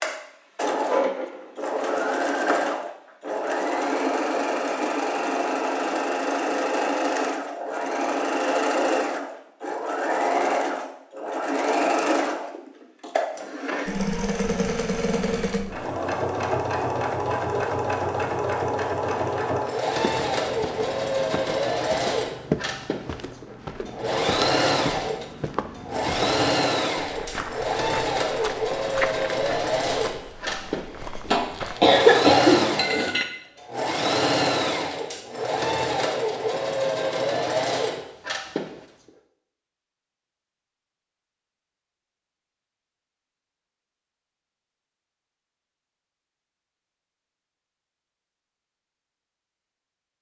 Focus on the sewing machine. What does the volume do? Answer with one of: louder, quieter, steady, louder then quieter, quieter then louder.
steady.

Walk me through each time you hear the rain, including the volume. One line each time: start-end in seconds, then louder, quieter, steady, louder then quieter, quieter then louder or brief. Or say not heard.
not heard.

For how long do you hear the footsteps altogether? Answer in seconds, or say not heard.
12 s.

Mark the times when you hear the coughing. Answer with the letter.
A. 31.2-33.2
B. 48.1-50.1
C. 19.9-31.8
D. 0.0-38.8
A.